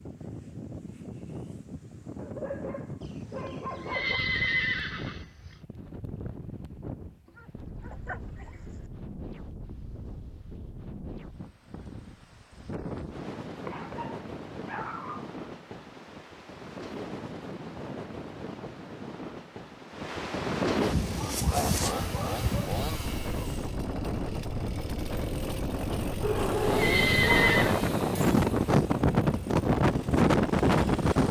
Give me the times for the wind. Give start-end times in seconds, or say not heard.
0.0-31.2.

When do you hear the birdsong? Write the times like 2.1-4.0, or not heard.
not heard.